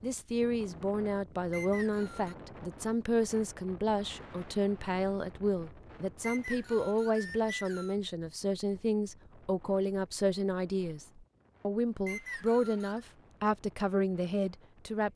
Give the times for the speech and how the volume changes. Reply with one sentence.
The speech can be heard from 0.0 to 15.1 s, at a steady volume.